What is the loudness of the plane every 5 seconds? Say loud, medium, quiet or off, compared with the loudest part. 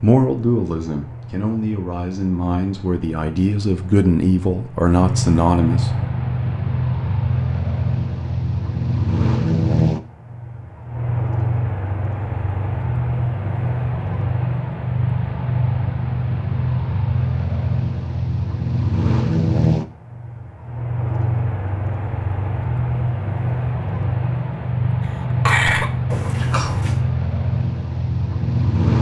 quiet, loud, loud, loud, loud, loud.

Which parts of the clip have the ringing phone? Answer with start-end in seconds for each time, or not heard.
26.1-27.0.